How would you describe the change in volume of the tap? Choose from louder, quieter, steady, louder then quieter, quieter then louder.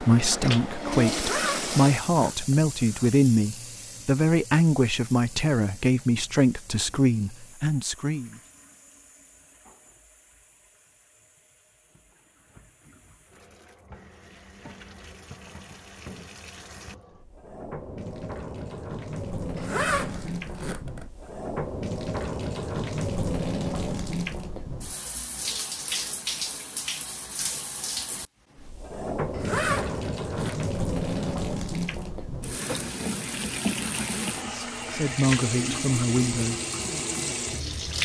quieter then louder.